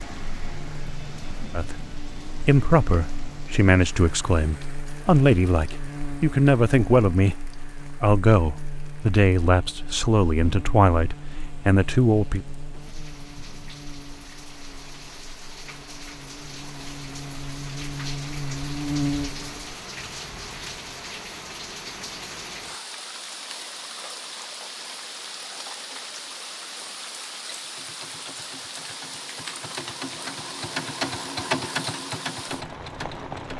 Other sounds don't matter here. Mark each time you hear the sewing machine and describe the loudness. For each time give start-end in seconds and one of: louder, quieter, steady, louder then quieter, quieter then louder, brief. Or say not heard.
27.6-33.5 louder then quieter.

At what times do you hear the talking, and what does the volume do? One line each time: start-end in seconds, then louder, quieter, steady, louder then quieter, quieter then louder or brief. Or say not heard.
1.6-12.4 steady.